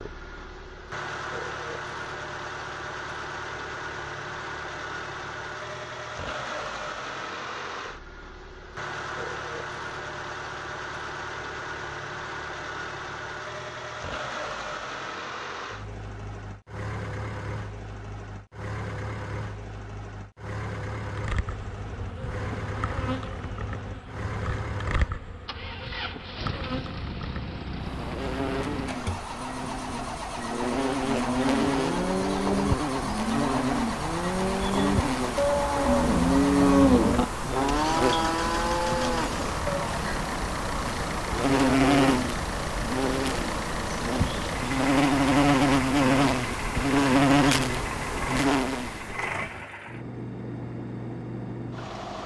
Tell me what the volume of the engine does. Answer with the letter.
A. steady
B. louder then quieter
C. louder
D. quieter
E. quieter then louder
A.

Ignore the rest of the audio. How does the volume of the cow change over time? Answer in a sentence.
The volume of the cow goes up, then down.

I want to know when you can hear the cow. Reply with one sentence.
The cow can be heard from 31.1 to 40.0 s.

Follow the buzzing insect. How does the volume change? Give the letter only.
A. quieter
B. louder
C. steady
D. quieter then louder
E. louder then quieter
B.